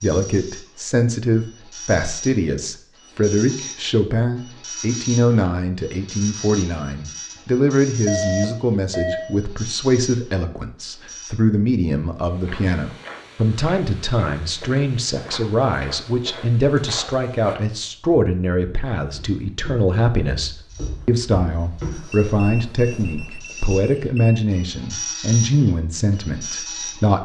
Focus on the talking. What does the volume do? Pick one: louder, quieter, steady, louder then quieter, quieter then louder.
steady.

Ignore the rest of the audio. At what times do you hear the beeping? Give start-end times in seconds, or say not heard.
8.1-9.3, 22.1-24.4.